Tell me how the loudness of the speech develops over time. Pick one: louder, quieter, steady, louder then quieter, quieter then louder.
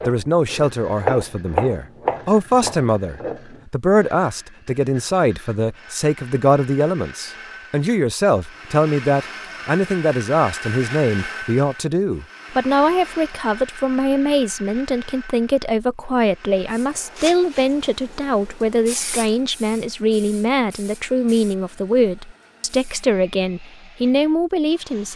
steady.